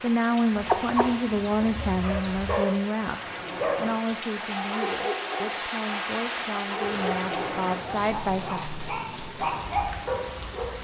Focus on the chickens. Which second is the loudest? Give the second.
1 s.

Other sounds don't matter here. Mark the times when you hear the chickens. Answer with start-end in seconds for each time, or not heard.
0.0-2.6.